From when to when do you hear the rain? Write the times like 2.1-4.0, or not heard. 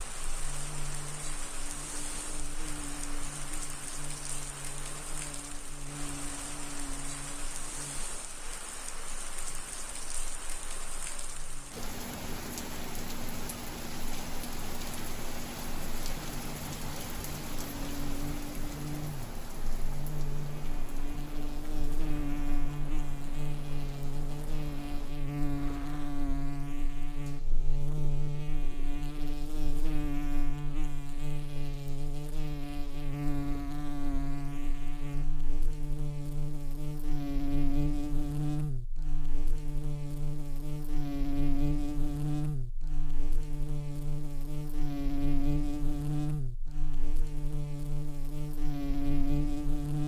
0.0-26.2.